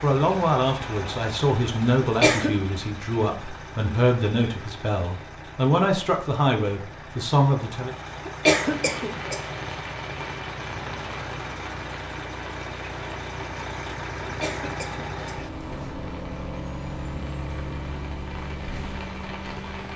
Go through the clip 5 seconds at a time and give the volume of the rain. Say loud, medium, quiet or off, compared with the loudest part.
off, loud, loud, medium.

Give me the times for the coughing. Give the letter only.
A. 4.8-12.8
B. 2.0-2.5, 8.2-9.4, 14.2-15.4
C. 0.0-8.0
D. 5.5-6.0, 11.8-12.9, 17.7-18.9
B.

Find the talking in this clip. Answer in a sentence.
The talking can be heard from 0.0 to 8.0 s.